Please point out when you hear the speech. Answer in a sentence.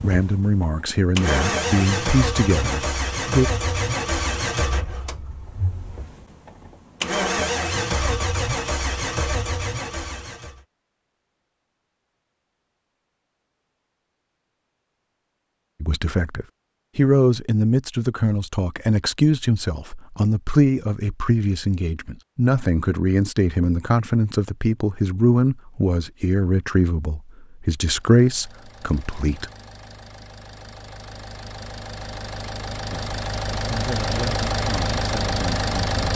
You can hear the speech from 0.0 to 3.5 s, from 15.8 to 29.5 s and from 32.9 to 36.1 s.